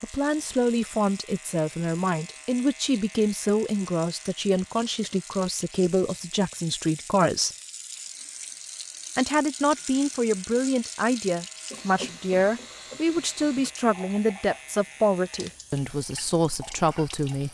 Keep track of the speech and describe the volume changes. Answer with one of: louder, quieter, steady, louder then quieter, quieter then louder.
steady.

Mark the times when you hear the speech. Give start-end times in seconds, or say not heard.
0.0-7.5, 9.2-17.5.